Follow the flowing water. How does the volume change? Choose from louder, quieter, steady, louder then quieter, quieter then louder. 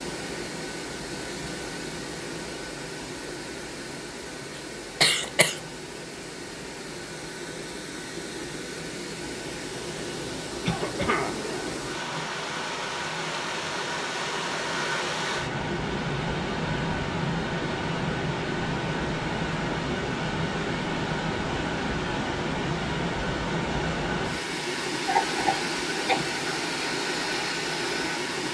louder.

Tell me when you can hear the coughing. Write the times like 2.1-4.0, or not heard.
5.0-5.6, 10.6-11.4, 25.1-26.2.